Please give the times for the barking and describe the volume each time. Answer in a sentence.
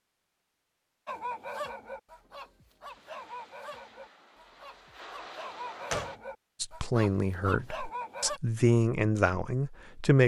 The barking can be heard from 1.1 to 8.4 s, getting quieter then louder.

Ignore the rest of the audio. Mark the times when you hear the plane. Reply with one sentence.
The plane can be heard from 2.9 to 6.2 s.